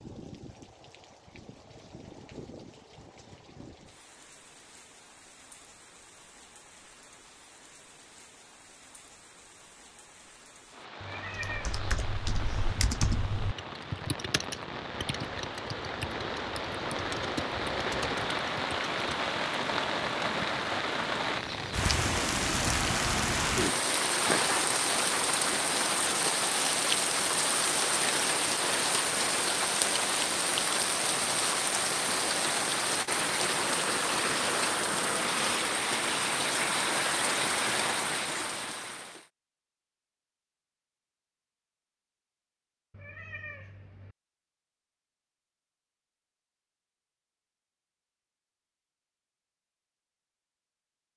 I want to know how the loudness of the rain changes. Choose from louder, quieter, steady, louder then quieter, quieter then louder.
louder.